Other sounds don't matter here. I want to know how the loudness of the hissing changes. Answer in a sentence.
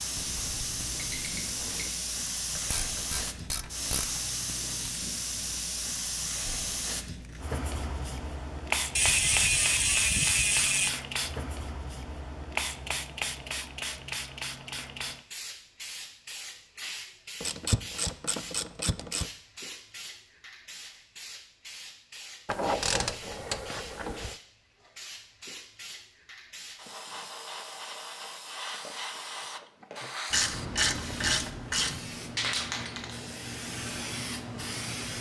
The loudness of the hissing goes down, then up.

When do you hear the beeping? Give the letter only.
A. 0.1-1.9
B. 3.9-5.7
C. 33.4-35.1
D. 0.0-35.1
A.